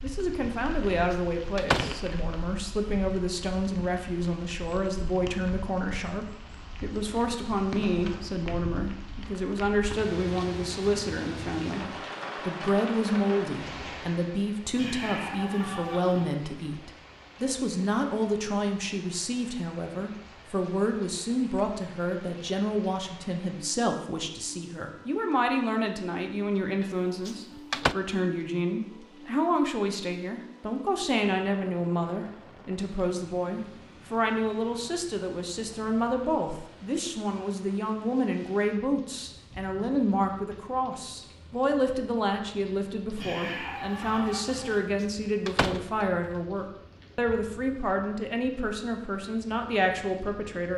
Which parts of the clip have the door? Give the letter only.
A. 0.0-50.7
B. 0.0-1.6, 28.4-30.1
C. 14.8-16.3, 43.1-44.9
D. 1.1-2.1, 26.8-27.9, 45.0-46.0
D.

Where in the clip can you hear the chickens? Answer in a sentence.
You can hear the chickens from 14.8 to 16.3 s and from 43.1 to 44.9 s.